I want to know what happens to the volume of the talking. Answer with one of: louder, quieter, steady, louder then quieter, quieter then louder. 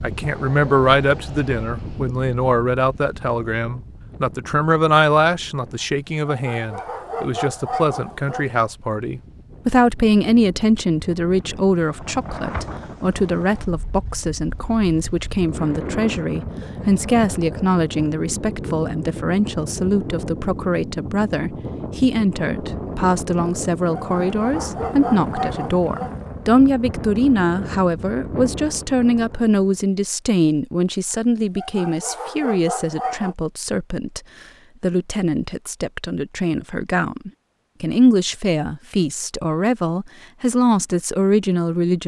steady.